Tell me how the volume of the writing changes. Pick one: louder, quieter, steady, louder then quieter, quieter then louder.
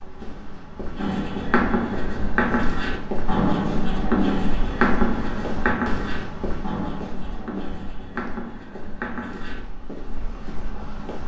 quieter.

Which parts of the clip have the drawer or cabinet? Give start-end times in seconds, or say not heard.
not heard.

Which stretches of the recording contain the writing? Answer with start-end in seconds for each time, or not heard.
0.9-9.6.